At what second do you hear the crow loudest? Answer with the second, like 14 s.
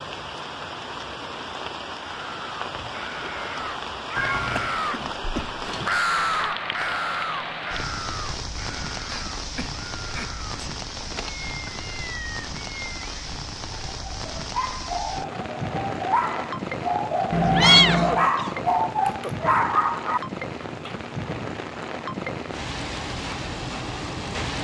6 s.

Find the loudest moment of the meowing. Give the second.
18 s.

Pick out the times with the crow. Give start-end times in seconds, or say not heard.
2.0-10.7.